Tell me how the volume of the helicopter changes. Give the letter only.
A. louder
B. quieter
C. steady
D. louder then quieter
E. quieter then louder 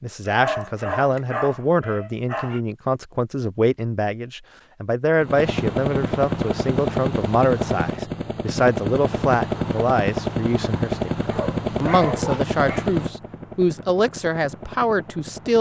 B.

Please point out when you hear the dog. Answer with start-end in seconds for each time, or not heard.
0.2-2.6, 11.3-12.9.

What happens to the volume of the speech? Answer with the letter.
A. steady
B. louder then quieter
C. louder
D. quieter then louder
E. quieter
A.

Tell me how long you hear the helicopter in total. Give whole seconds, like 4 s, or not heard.
10 s.